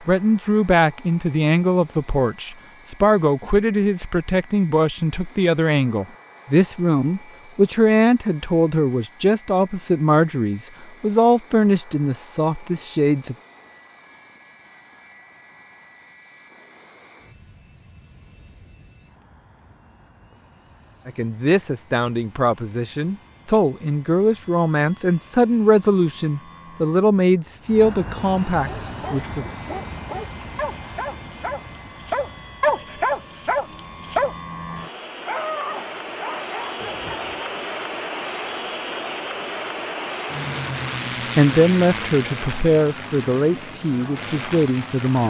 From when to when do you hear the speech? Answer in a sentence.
The speech can be heard from 0.1 to 13.3 s, from 21.1 to 29.4 s and from 41.4 to 45.2 s.